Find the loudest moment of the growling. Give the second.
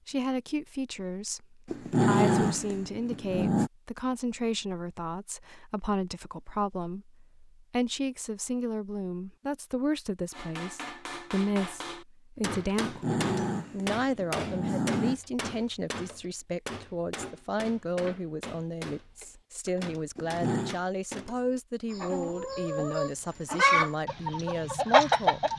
2 s.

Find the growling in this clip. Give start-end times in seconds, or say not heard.
1.6-3.7, 12.8-15.2, 20.1-20.8.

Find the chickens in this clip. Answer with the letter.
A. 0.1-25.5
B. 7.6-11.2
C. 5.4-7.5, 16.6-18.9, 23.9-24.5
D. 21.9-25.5
D.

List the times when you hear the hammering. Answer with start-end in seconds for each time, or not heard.
10.3-21.5.